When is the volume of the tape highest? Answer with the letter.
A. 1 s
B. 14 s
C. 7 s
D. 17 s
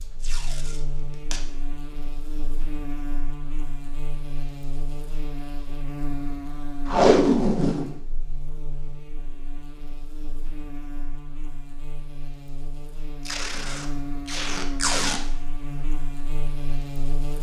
C.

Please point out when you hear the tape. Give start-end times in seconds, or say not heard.
0.2-1.4, 6.8-8.0, 13.2-15.2.